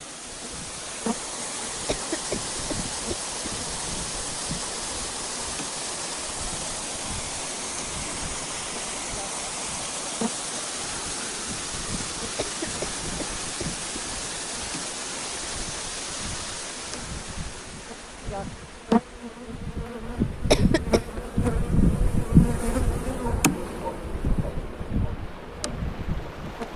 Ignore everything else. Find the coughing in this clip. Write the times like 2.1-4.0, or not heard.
1.9-3.5, 12.3-14.0, 20.5-21.2.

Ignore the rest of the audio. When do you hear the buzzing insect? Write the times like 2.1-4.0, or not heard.
0.2-26.7.